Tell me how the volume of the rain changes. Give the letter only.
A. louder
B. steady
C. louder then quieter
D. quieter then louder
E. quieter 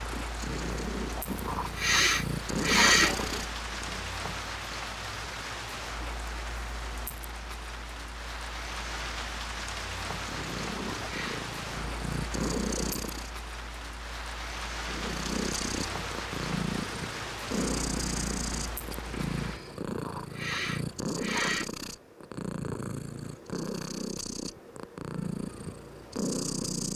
B.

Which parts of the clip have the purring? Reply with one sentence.
You can hear the purring from 0.0 to 4.1 s, from 10.1 to 13.3 s and from 14.8 to 26.9 s.